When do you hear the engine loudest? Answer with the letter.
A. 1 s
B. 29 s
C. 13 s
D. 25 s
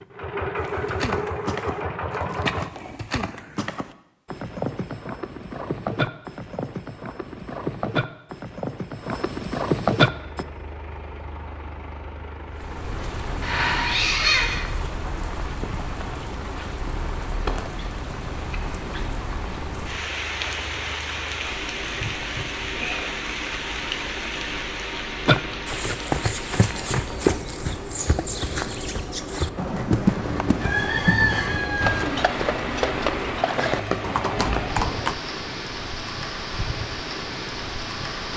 A.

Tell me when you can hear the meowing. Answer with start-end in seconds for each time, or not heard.
13.4-14.7.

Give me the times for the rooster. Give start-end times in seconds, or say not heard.
30.1-32.0.